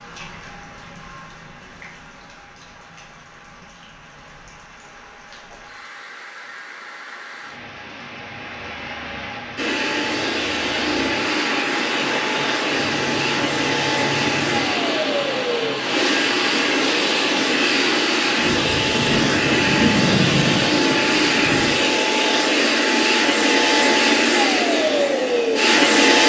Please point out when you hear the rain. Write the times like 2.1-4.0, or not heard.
0.0-21.9.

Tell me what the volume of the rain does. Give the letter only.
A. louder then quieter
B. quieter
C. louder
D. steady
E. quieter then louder
C.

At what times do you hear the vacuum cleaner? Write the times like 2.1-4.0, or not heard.
9.6-26.2.